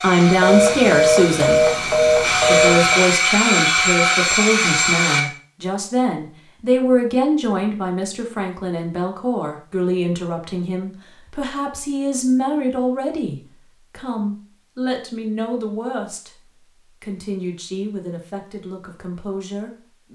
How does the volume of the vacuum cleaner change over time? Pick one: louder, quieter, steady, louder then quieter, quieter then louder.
louder.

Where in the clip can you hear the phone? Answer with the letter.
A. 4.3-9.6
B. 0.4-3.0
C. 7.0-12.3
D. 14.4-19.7
B.